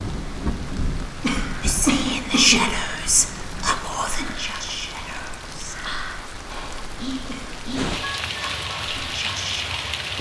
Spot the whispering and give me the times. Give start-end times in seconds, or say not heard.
1.6-9.9.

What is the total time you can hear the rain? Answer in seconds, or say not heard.
10 s.